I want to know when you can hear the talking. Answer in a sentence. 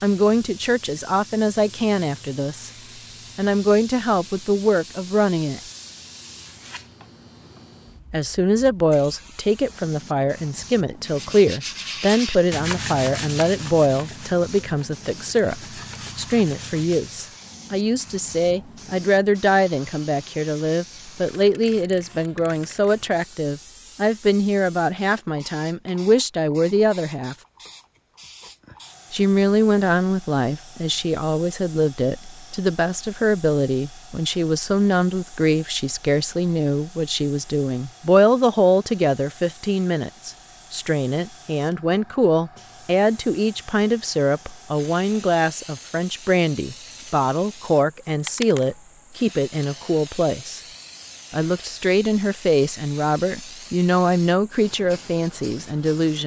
The talking can be heard from 0.0 to 2.7 s, from 3.4 to 5.6 s, from 8.1 to 27.4 s, from 29.1 to 50.6 s and from 51.3 to 56.2 s.